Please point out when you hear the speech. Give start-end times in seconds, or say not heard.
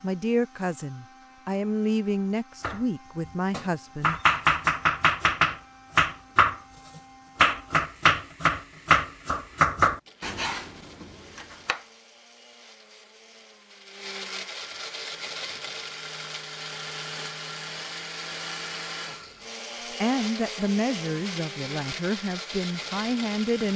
0.0-4.2, 20.0-23.7.